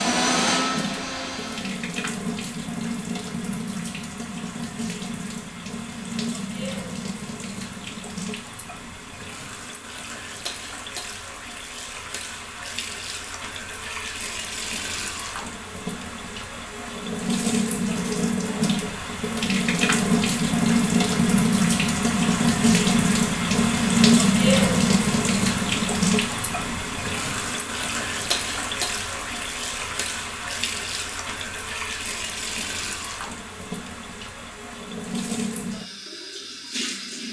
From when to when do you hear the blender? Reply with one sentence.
The blender can be heard from 0.0 to 1.9 s.